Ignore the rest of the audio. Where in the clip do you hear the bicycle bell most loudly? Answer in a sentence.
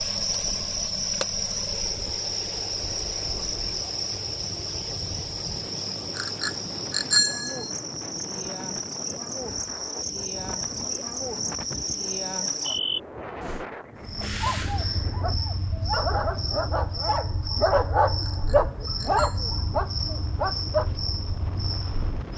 The volume of the bicycle bell peaks at 7 seconds.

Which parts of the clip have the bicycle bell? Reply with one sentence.
The bicycle bell can be heard from 6.2 to 7.7 s and from 18.2 to 19.4 s.